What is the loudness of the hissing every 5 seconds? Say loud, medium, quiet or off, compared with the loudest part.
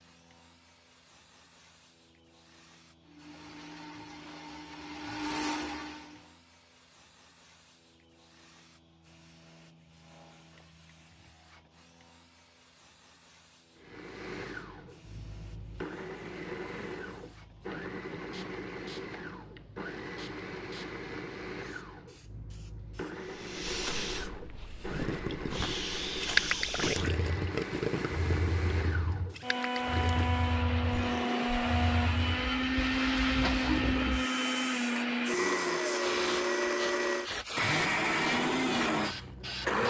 quiet, quiet, quiet, quiet, medium, loud, loud, loud.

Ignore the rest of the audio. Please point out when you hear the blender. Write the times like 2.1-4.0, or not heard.
3.0-6.3, 13.8-39.8.